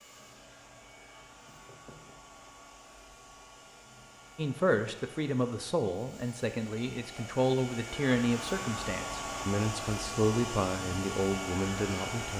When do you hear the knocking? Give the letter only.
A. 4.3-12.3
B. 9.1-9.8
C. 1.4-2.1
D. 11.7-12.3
C.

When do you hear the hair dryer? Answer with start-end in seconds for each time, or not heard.
0.0-12.3.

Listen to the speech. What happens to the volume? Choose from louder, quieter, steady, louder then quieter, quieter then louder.
steady.